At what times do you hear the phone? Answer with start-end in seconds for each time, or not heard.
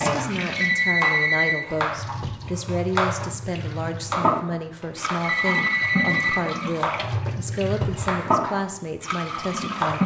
0.6-1.6, 5.2-6.4.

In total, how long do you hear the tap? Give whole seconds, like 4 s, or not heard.
10 s.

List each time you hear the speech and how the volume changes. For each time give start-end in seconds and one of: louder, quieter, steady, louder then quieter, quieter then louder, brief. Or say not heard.
0.0-10.0 steady.